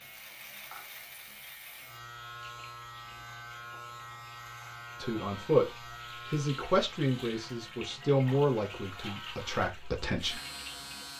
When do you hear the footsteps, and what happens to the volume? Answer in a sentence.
The footsteps can't be heard in this clip.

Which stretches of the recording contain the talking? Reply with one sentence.
The talking can be heard from 5.0 to 10.4 s.